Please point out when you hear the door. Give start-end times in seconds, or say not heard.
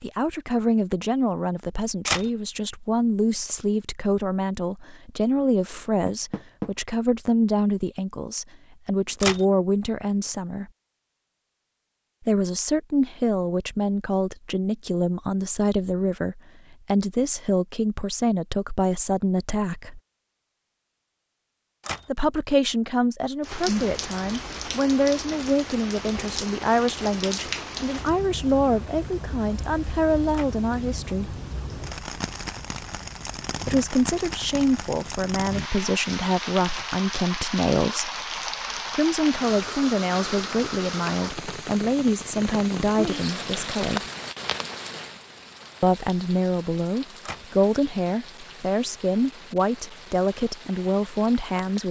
6.0-6.7, 40.5-41.1.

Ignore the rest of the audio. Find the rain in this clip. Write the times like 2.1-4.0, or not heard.
23.4-51.8.